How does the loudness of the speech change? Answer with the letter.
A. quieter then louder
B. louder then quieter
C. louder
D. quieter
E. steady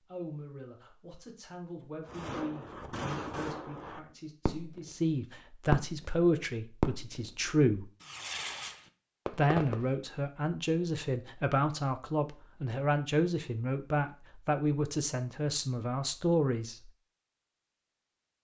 C.